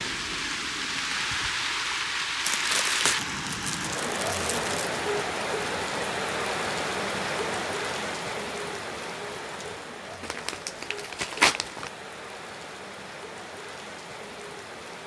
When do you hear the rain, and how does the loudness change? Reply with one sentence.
You can hear the rain from 0.0 to 15.0 s, getting quieter.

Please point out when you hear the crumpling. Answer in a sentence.
The crumpling can be heard from 2.5 to 4.9 s and from 10.2 to 11.9 s.